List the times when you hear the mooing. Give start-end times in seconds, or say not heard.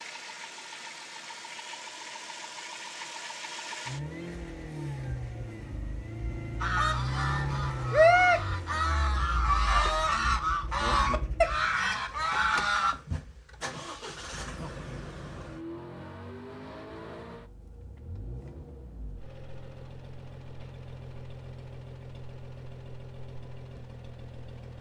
not heard.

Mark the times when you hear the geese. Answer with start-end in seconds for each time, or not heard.
6.6-12.9.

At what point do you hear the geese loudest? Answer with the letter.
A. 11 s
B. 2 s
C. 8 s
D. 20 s
C.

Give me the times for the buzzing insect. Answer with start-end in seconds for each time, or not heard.
not heard.